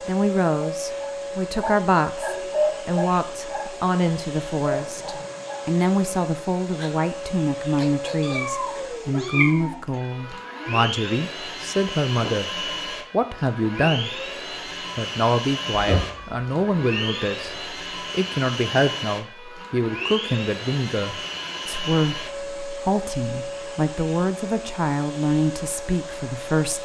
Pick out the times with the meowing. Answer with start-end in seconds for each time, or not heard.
8.2-10.0, 15.7-17.4.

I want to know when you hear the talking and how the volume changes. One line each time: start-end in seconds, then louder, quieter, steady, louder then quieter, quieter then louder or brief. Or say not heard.
0.1-14.1 steady
14.9-26.7 steady.